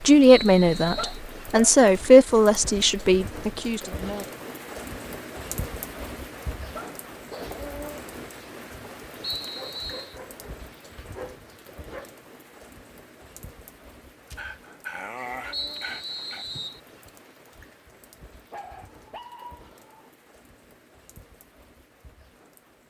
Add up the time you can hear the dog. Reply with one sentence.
The dog can be heard for 8 seconds in total.